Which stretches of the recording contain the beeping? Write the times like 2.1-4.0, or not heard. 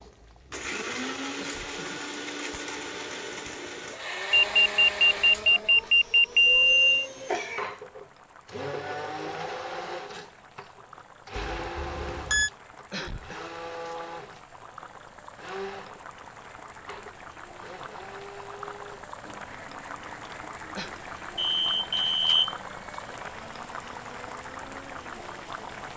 4.3-7.0, 11.3-12.5, 21.4-22.6.